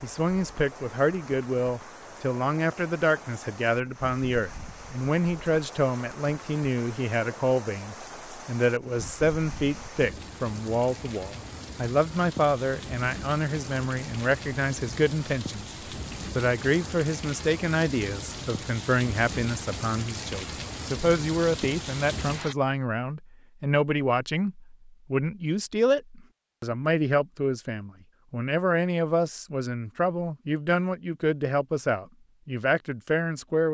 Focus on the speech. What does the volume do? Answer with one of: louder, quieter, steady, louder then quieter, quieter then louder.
steady.